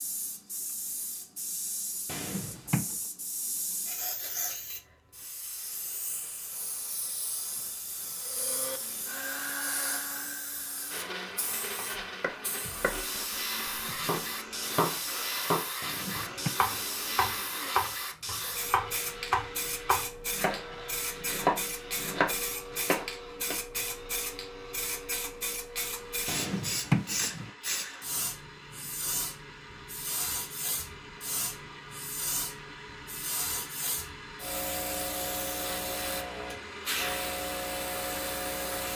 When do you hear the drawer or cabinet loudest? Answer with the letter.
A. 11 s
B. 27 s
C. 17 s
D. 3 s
B.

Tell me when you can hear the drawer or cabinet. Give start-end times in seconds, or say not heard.
2.0-3.0, 15.8-16.5, 26.2-27.5.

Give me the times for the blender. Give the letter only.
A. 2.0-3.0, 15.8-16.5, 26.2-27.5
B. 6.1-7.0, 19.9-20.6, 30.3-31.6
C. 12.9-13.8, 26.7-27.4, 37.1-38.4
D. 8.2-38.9
D.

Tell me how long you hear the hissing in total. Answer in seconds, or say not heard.
39 s.